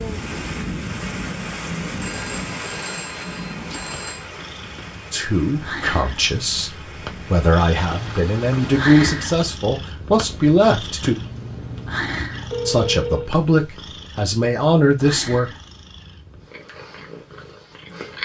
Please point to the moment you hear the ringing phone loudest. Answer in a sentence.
The loudest moment of the ringing phone is at 13 seconds.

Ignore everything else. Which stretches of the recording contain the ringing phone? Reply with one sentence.
The ringing phone can be heard from 2.0 to 4.2 s and from 11.0 to 13.3 s.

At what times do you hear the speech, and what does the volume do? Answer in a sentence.
You can hear the speech from 5.1 to 11.2 s, getting louder; and briefly from 12.7 to 15.5 s.